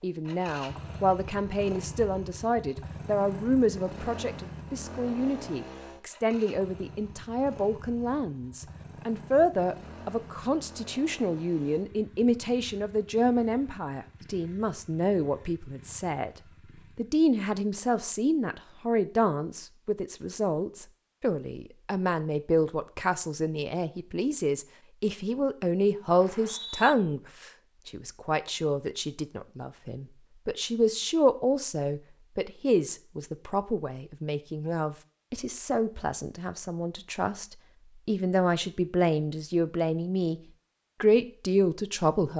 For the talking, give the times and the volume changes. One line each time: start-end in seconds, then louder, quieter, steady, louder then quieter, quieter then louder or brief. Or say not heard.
0.0-16.3 steady
16.9-40.4 steady
41.0-42.3 brief.